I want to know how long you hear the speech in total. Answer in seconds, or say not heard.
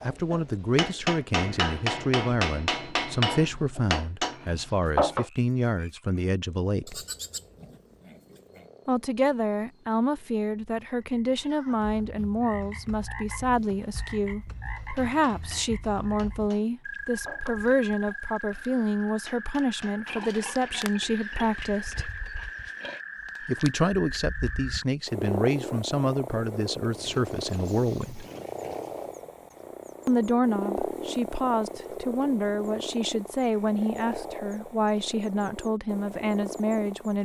32 s.